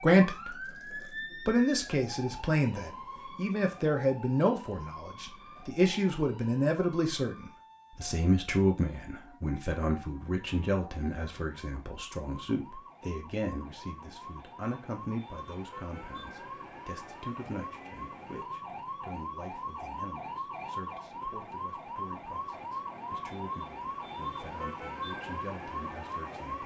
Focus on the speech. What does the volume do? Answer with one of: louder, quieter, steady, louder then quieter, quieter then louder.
quieter.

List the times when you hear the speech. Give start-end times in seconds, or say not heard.
0.0-26.6.